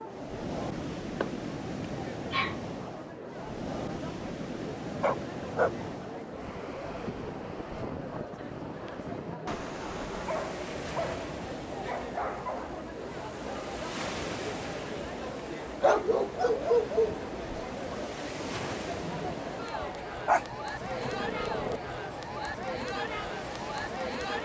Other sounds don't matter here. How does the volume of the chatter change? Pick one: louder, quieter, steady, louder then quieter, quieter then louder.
louder.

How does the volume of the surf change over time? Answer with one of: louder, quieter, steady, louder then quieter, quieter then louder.
quieter.